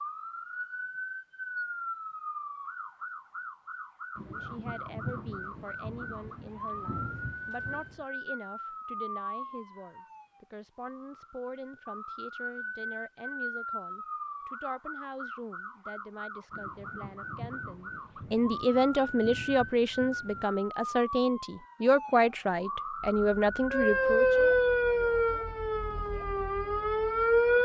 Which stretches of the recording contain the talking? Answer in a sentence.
You can hear the talking from 4.2 to 24.4 s.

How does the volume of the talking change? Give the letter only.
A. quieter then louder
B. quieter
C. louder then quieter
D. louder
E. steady
D.